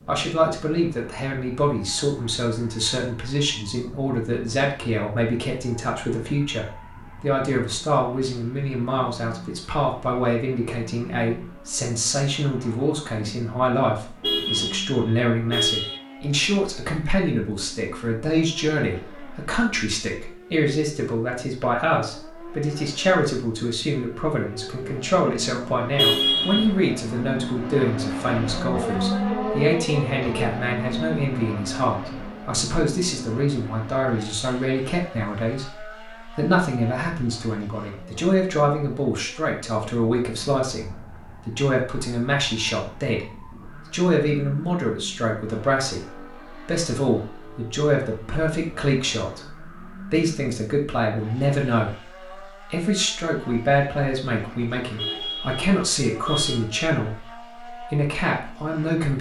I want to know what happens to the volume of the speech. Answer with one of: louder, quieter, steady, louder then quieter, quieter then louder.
steady.